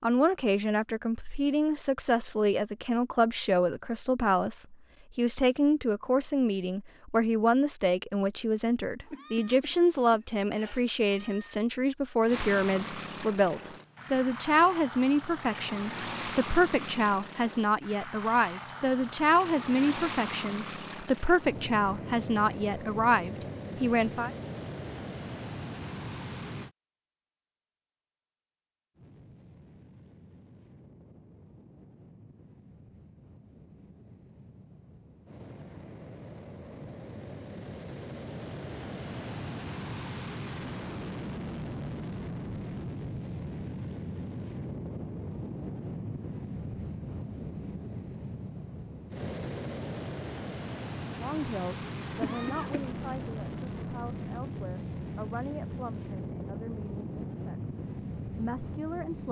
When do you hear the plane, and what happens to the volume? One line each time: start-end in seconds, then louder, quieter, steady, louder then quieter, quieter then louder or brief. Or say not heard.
12.2-26.7 steady
28.9-59.2 louder.